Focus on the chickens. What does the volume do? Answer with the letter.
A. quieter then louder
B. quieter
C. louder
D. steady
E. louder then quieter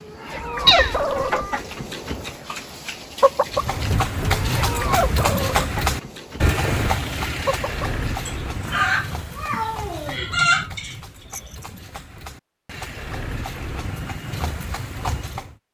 A.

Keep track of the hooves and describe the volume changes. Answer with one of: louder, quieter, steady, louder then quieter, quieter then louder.
quieter then louder.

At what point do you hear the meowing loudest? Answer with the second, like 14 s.
1 s.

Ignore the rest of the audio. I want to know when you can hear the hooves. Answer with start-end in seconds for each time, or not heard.
3.5-15.6.